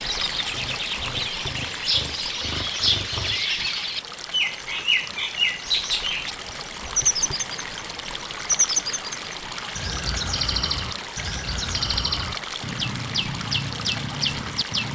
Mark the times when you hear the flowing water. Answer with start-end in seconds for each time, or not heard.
0.0-14.9.